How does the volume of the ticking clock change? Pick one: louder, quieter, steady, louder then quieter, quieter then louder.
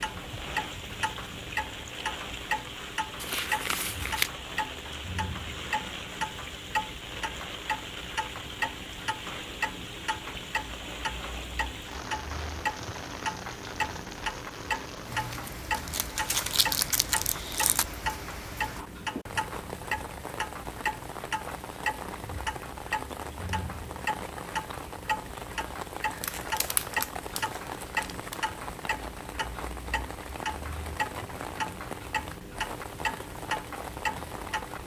steady.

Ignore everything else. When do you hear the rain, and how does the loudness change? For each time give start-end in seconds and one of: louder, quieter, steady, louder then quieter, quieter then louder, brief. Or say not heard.
0.0-34.8 steady.